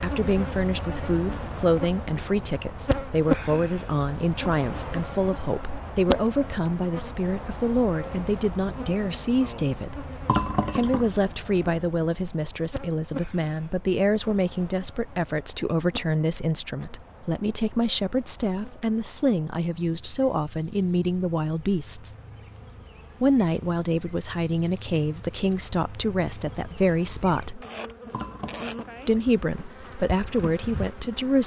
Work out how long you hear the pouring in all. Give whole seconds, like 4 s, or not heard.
2 s.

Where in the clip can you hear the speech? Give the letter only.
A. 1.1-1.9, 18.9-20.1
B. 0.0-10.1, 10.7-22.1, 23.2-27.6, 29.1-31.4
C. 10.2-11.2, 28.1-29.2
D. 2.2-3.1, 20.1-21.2
B.